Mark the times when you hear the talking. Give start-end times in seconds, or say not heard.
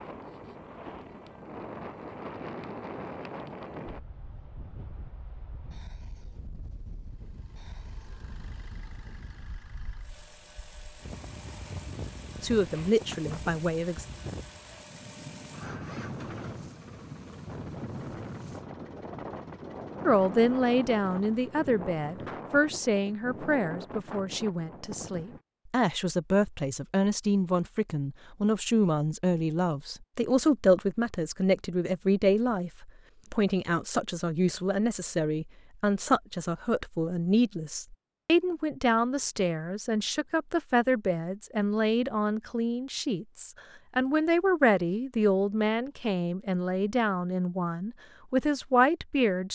12.4-14.1, 20.1-49.5.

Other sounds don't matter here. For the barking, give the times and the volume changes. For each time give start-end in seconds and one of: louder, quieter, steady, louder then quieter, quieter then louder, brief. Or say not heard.
not heard.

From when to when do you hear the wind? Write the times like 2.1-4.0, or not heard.
0.0-25.4.